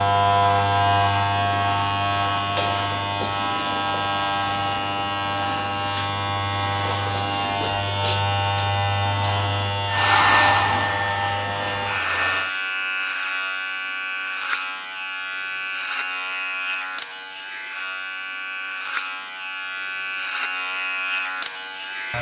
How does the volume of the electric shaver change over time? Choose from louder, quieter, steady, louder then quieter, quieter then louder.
quieter.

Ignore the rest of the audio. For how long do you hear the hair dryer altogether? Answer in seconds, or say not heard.
3 s.